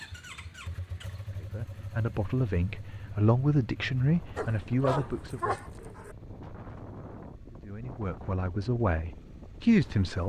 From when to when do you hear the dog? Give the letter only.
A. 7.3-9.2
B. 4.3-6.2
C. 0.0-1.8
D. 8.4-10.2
B.